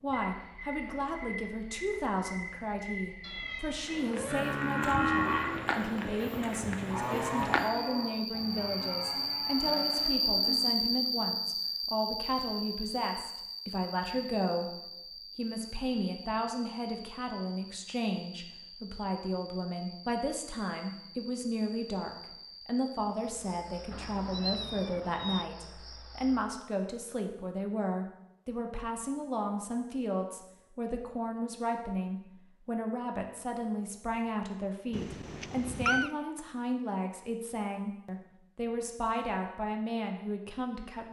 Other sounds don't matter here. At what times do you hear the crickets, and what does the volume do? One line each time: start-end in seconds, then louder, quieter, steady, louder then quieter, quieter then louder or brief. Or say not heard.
0.0-26.4 louder then quieter.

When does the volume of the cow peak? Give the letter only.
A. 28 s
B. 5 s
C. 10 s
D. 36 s
B.